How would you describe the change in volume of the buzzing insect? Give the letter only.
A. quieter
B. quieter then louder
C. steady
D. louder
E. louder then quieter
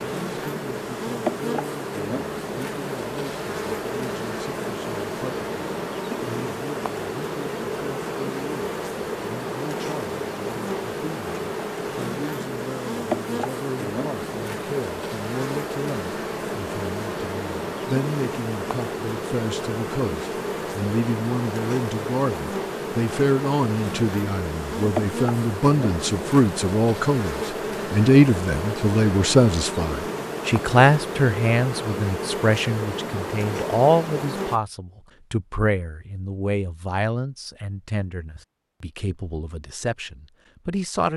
C.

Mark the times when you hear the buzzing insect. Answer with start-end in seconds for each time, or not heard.
0.0-34.6.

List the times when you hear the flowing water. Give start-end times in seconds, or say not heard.
not heard.